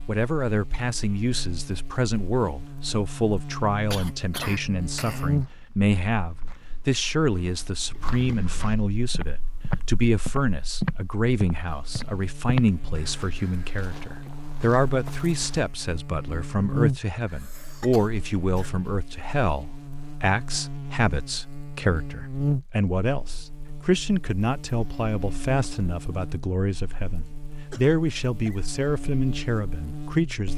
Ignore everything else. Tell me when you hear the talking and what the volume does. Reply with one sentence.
The talking can be heard from 0.1 to 30.5 s, at a steady volume.